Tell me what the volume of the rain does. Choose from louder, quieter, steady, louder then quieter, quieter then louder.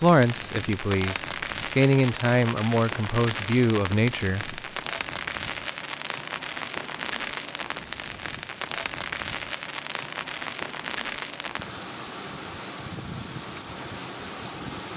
steady.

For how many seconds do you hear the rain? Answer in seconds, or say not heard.
15 s.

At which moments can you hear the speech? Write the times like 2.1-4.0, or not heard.
0.0-4.6.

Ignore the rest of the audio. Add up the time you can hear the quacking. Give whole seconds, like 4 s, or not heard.
not heard.